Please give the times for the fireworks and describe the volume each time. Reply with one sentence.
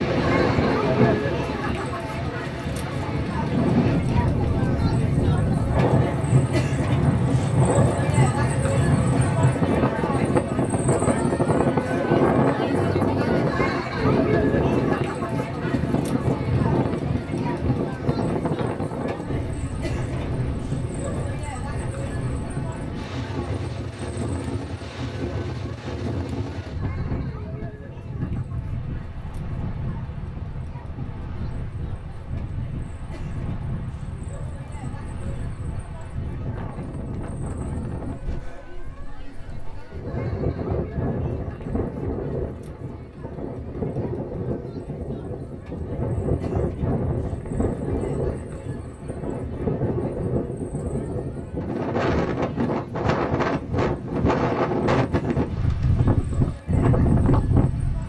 The fireworks can't be heard in this clip.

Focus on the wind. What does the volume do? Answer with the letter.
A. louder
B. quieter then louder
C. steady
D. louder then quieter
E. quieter
B.